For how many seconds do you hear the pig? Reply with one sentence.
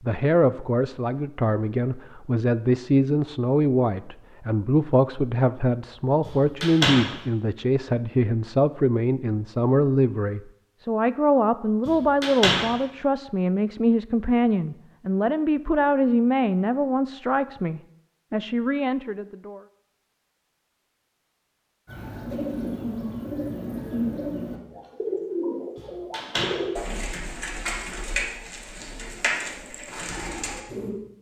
The pig can't be heard in this clip.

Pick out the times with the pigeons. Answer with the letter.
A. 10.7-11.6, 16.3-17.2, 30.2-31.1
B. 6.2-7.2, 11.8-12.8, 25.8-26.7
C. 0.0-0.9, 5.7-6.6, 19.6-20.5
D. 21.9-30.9
D.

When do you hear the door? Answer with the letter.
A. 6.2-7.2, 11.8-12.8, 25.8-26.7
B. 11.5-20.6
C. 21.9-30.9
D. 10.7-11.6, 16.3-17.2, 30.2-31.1
A.